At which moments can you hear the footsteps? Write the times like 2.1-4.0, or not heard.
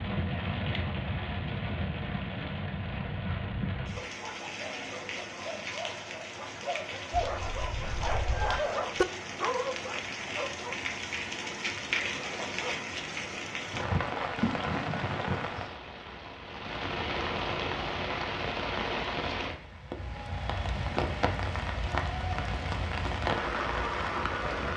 not heard.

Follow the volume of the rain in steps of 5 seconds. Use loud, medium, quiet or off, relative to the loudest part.
loud, medium, loud, loud, loud.